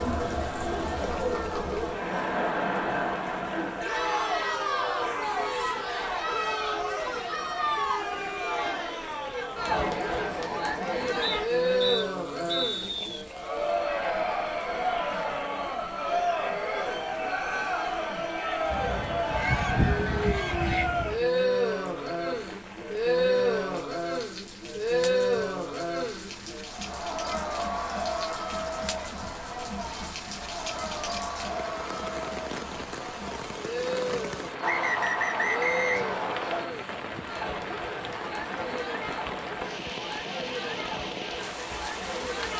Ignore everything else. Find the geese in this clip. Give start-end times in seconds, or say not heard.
18.7-21.3.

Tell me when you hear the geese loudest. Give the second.
20 s.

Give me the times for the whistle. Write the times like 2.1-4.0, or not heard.
11.2-13.2, 34.6-36.6.